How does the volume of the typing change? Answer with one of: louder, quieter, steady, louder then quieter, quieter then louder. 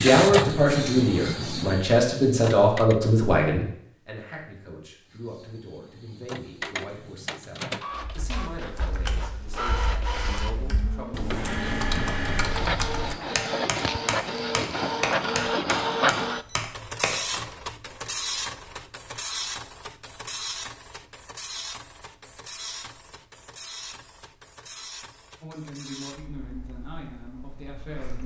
louder.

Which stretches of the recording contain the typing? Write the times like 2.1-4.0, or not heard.
8.0-17.5.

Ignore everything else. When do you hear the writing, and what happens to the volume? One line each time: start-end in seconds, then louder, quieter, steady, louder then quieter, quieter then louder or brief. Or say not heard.
not heard.